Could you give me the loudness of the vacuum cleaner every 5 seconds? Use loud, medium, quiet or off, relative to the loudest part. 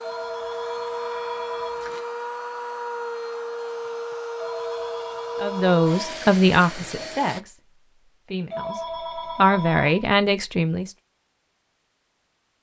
loud, loud, off.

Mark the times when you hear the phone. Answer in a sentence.
You can hear the phone from 0.0 to 2.0 s, from 4.3 to 6.2 s and from 8.5 to 10.0 s.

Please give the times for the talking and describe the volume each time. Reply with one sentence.
You can hear the talking from 5.4 to 10.9 s, getting quieter then louder.